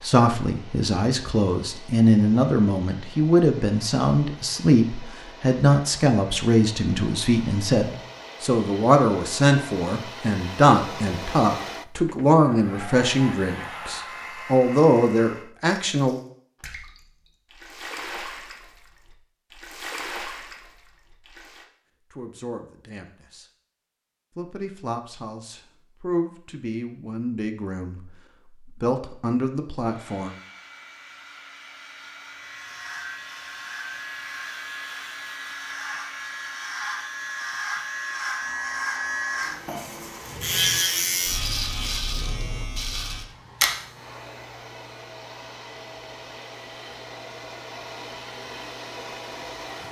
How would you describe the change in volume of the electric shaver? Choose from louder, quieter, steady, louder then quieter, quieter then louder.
louder then quieter.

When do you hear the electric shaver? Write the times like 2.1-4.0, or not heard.
32.3-49.8.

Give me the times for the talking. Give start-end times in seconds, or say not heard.
0.0-16.2, 22.1-23.4, 24.4-30.3.